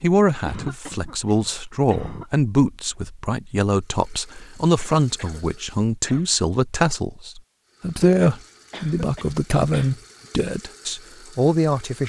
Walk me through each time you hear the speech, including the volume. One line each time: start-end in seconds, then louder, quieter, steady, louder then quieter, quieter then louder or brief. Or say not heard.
0.0-12.0 steady.